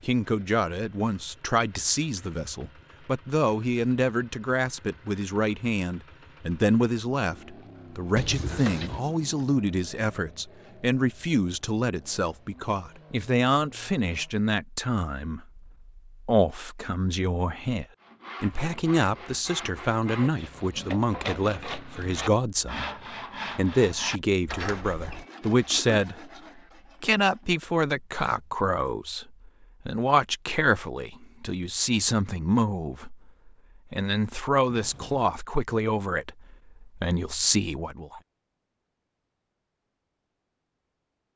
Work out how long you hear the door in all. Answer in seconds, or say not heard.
2 s.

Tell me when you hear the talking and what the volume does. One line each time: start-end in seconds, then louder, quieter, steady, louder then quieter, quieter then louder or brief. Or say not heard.
0.0-22.9 steady
23.6-26.3 brief
27.0-38.2 steady.